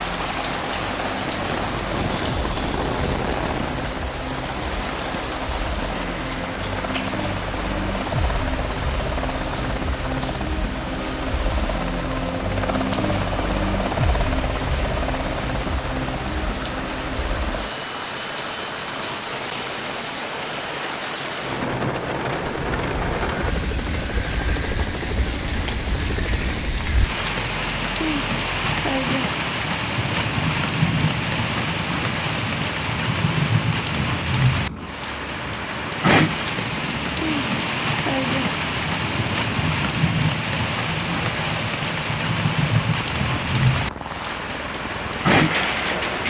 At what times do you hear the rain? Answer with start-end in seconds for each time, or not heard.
0.0-46.2.